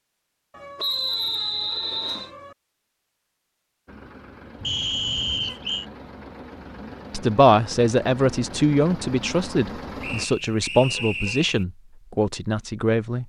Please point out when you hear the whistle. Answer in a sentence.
You can hear the whistle from 0.8 to 2.3 s, from 4.6 to 5.8 s and from 10.0 to 11.7 s.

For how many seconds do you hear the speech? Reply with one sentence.
You can hear the speech for 6 seconds altogether.